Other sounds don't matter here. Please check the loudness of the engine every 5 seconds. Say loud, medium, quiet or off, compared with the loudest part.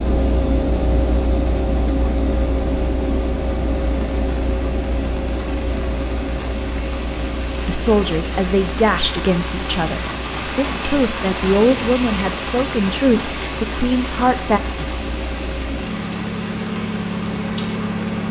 loud, medium, medium, loud.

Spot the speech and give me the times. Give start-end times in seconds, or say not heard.
7.7-14.6.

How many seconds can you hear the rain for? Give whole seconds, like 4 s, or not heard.
18 s.